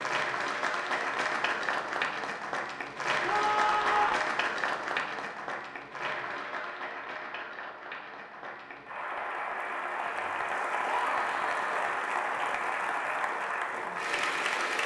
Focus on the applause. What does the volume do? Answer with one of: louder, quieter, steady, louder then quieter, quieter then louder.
quieter then louder.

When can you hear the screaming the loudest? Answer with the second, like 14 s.
4 s.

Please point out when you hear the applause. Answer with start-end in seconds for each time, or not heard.
0.0-14.8.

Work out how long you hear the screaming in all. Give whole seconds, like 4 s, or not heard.
2 s.